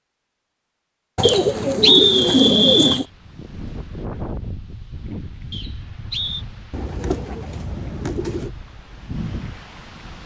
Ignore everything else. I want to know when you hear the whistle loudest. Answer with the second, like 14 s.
2 s.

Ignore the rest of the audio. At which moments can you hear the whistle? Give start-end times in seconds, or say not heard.
1.2-3.0, 5.5-6.5.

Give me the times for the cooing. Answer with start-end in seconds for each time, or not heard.
1.1-3.0, 6.7-8.5.